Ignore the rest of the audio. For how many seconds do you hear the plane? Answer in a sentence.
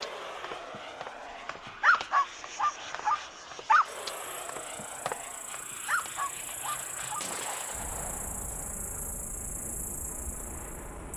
The plane can be heard for 11 seconds in total.